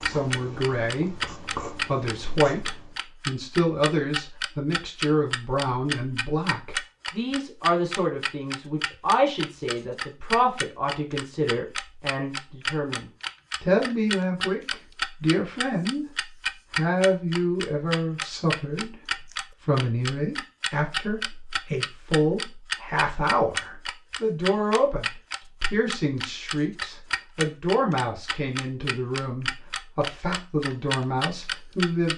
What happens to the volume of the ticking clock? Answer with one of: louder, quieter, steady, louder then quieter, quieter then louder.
steady.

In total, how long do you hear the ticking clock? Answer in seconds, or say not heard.
32 s.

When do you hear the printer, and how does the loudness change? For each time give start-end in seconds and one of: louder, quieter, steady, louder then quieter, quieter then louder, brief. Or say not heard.
not heard.